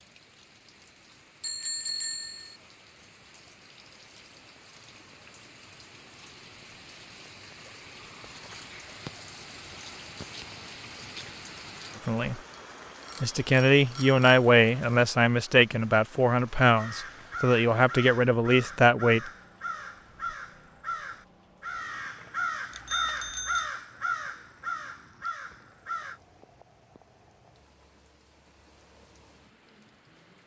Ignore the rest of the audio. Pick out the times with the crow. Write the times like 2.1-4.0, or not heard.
16.7-26.2.